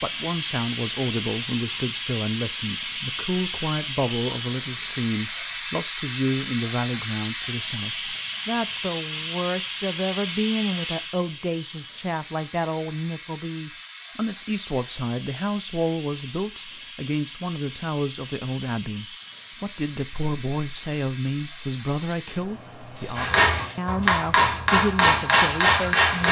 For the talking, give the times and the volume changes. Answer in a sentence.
You can hear the talking from 0.0 to 26.2 s, at a steady volume.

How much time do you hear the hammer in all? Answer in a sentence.
You can hear the hammer for 3 seconds altogether.